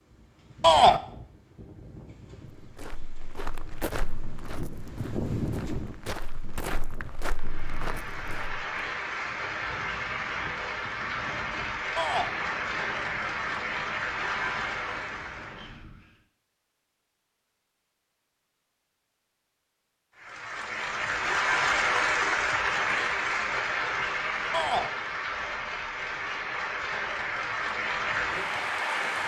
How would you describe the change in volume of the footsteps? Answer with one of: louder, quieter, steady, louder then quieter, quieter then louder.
quieter then louder.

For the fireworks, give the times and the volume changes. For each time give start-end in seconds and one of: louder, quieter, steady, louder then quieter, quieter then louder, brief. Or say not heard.
not heard.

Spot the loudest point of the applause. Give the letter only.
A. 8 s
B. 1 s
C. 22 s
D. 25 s
C.